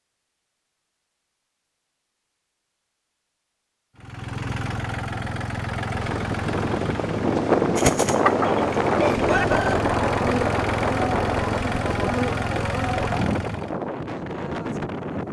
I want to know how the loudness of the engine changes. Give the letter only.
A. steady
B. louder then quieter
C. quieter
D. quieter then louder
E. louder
A.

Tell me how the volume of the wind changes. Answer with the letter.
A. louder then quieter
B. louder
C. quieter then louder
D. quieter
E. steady
D.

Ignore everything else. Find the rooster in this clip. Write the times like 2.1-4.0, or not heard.
7.8-9.8.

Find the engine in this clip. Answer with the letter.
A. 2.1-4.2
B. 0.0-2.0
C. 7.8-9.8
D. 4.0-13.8
D.